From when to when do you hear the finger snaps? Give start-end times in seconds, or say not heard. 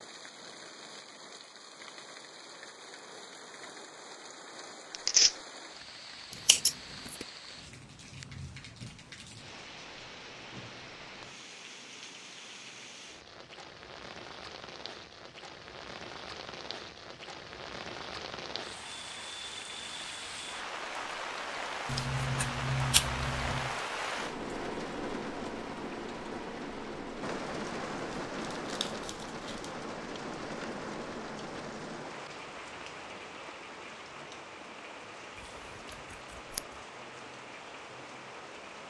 not heard.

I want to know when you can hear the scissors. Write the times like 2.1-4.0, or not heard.
6.3-7.2, 21.9-23.8, 35.5-36.6.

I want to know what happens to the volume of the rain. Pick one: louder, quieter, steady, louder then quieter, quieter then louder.
louder then quieter.